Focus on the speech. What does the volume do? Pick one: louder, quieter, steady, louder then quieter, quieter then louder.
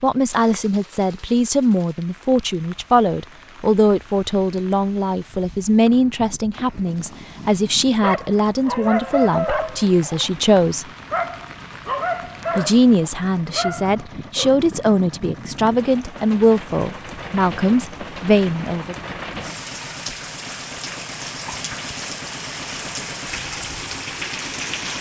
steady.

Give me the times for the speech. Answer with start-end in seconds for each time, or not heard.
0.0-10.8, 12.6-18.9.